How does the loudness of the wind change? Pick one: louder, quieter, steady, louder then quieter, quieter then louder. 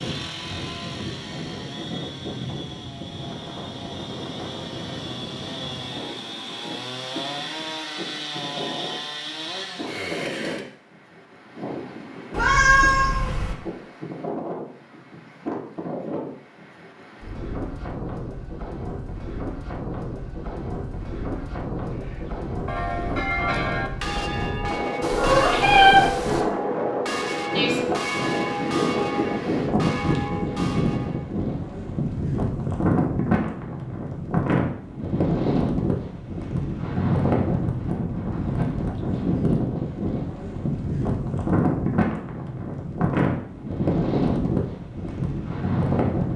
louder.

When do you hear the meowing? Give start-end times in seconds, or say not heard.
12.3-13.6, 25.0-26.4.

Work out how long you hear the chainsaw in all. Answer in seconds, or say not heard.
11 s.